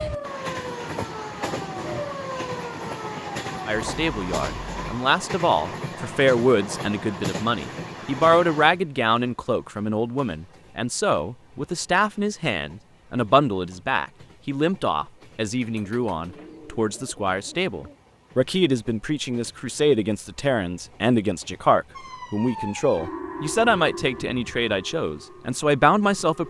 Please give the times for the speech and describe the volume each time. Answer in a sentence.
You can hear the speech from 3.6 to 26.4 s, at a steady volume.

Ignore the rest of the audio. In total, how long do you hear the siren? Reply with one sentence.
You can hear the siren for 9 seconds altogether.